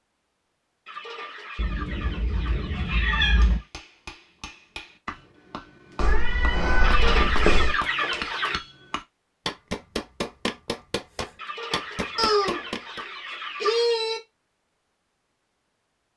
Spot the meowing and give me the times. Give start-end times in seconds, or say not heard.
1.6-3.6, 6.0-7.8, 12.2-14.2.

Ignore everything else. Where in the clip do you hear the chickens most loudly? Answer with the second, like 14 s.
7 s.